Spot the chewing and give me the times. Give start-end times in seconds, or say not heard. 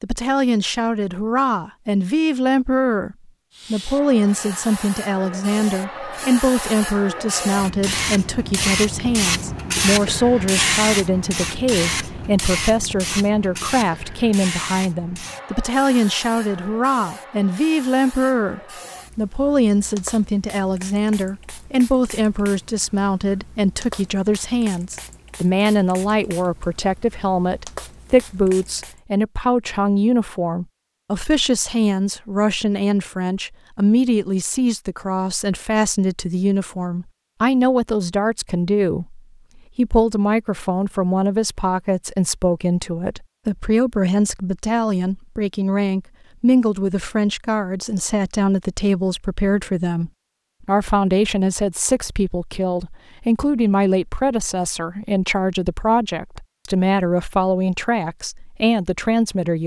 not heard.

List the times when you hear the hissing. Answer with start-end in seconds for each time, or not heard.
3.5-29.0.